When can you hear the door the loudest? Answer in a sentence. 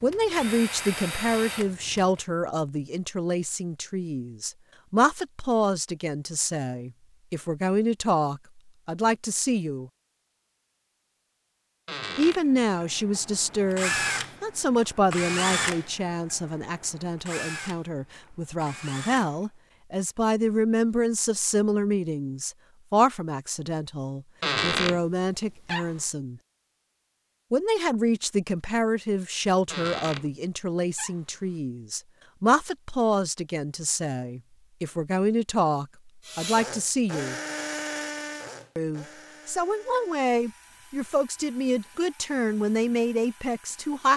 The loudest moment of the door is at 25 seconds.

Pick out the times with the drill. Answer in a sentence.
You can hear the drill from 0.0 to 2.2 s, from 12.5 to 19.5 s and from 36.2 to 44.1 s.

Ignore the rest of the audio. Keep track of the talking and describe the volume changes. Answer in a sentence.
The loudness of the talking stays about the same.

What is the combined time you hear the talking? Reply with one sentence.
You can hear the talking for 39 seconds altogether.